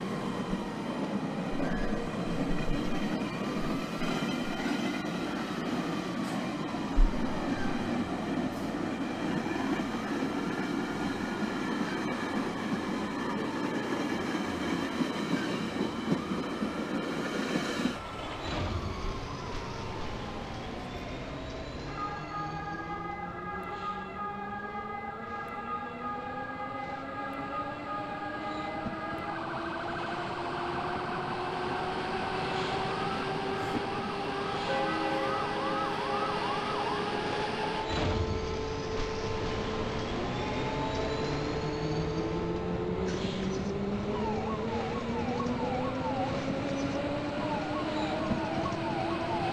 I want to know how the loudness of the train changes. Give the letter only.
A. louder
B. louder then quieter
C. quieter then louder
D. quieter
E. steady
C.